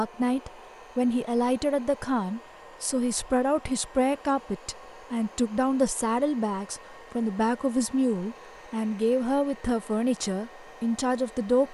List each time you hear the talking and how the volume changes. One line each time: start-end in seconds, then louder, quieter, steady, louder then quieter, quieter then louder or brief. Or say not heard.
0.0-11.6 steady.